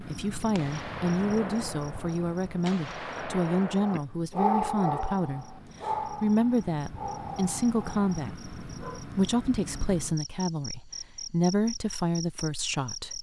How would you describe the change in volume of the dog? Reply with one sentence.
The volume of the dog goes down.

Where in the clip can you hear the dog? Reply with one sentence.
The dog can be heard from 3.8 to 9.1 s.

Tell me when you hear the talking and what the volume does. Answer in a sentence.
The talking can be heard from 0.0 to 13.1 s, at a steady volume.